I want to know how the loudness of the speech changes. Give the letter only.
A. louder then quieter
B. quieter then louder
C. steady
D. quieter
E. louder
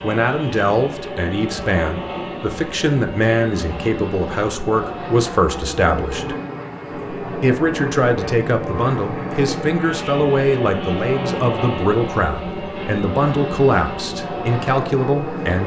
C.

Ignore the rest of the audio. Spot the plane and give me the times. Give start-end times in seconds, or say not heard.
0.0-15.6.